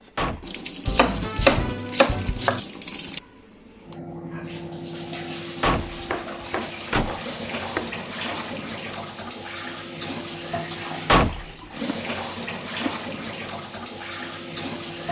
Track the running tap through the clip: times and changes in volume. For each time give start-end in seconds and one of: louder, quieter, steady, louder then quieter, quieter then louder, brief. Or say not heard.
0.0-15.0 steady.